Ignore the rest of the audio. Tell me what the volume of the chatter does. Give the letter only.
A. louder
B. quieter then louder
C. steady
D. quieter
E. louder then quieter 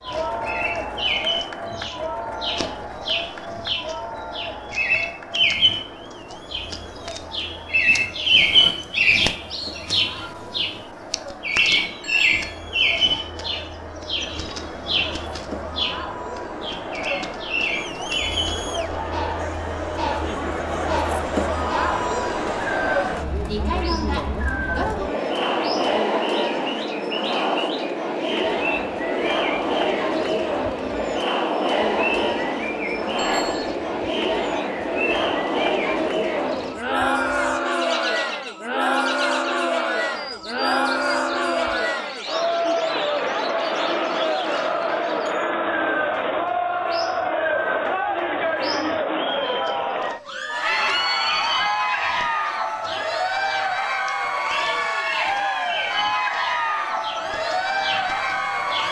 A.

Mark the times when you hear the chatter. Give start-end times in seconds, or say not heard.
0.0-58.8.